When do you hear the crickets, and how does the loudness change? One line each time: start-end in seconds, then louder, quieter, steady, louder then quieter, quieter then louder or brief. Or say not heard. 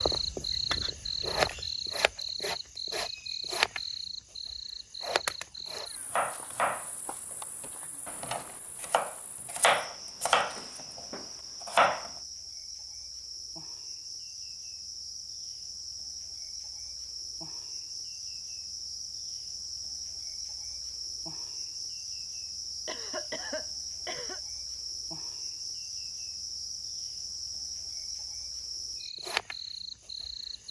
0.0-30.6 quieter then louder.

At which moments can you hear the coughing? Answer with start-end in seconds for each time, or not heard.
22.9-24.4.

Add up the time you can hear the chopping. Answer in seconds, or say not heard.
6 s.